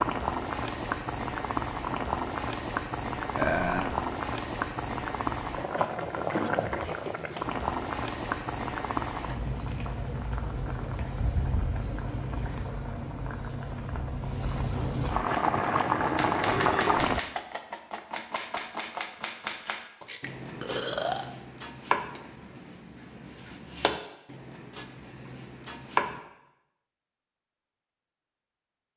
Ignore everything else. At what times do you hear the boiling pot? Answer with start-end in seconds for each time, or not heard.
0.0-17.2.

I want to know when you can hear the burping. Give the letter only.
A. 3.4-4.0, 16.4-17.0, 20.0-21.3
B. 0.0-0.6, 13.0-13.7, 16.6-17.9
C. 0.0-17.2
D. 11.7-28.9
A.